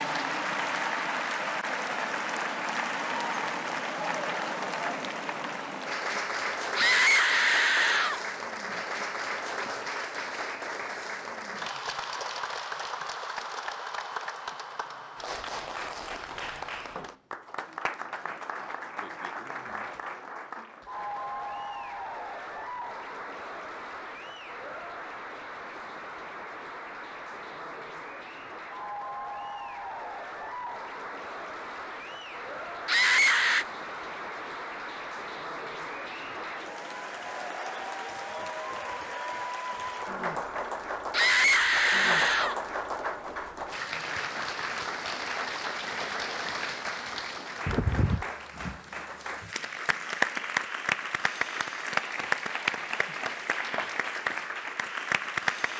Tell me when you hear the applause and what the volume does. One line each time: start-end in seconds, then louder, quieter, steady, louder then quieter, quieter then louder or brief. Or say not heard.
0.0-55.7 quieter then louder.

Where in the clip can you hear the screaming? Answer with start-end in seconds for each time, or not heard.
6.8-8.2, 32.9-33.6, 41.1-42.6.